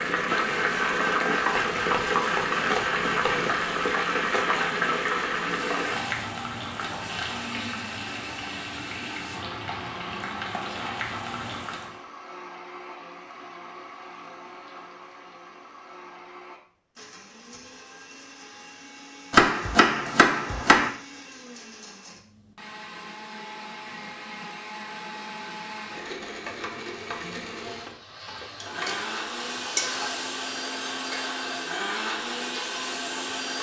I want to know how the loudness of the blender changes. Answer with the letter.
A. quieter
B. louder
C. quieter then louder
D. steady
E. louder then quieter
C.